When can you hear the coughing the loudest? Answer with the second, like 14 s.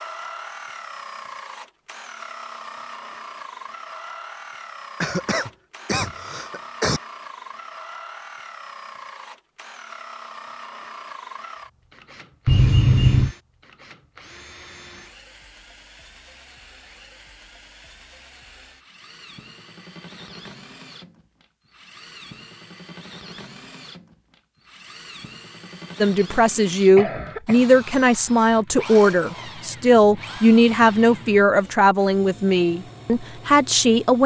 13 s.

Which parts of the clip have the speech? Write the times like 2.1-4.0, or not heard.
26.0-34.2.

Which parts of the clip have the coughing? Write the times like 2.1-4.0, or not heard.
5.0-7.0, 12.4-13.3, 26.9-27.6.